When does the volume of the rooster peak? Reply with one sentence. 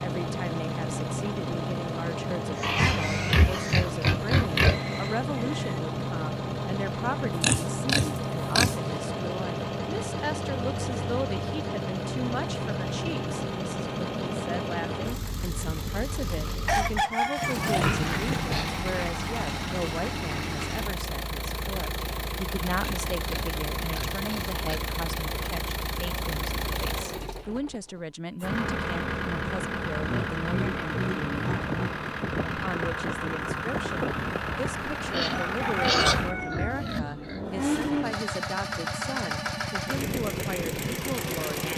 The volume of the rooster peaks at 17 seconds.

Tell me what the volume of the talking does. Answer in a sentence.
The loudness of the talking stays about the same.